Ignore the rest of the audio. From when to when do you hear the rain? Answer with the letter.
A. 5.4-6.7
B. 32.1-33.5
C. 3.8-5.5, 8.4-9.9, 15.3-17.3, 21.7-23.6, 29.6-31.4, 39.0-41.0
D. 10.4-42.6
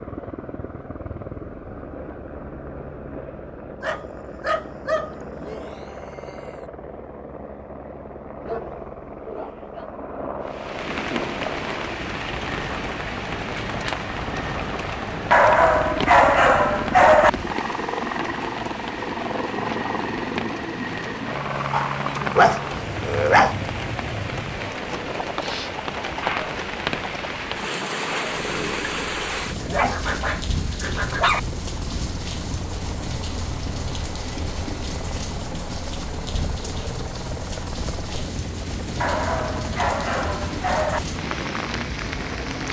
D.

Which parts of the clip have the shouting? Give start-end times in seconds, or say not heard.
5.4-6.7.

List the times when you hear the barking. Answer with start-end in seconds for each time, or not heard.
3.8-5.5, 8.4-9.9, 15.3-17.3, 21.7-23.6, 29.6-31.4, 39.0-41.0.